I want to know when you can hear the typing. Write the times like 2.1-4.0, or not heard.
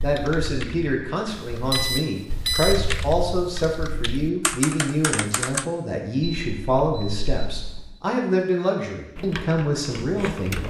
0.0-5.7, 9.2-10.6.